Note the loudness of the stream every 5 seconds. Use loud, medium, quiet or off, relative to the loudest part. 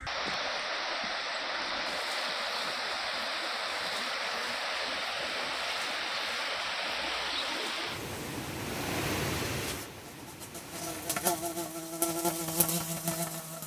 loud, loud, quiet.